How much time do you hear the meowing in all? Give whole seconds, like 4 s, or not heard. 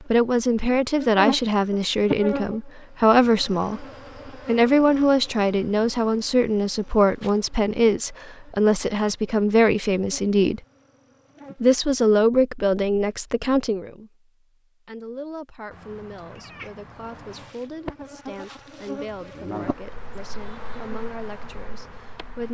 2 s.